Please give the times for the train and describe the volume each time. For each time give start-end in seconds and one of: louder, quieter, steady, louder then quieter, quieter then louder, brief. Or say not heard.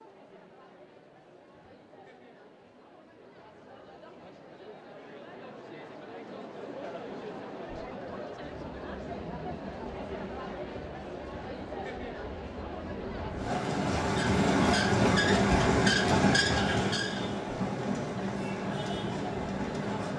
8.3-20.1 louder then quieter.